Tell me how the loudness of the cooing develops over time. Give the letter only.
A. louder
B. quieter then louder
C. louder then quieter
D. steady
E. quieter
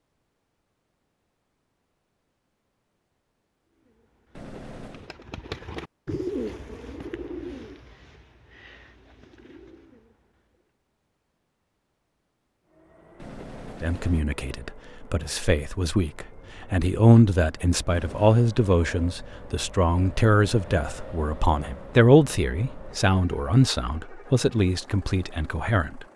C.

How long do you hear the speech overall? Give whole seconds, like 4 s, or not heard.
12 s.